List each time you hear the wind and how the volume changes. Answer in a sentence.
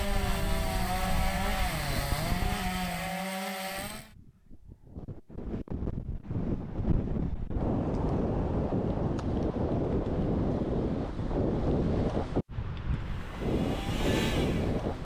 You can hear the wind from 0.0 to 14.9 s, getting louder.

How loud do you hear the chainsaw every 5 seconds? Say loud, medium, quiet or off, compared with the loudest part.
loud, off, medium.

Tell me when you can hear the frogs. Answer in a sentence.
You can't hear the frogs here.